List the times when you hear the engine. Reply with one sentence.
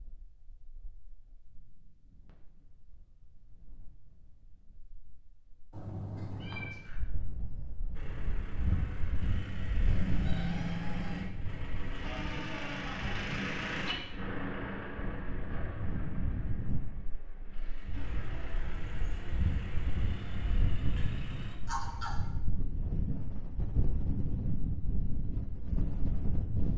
You can hear the engine from 8.0 to 21.6 s.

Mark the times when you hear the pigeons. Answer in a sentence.
You can't hear the pigeons here.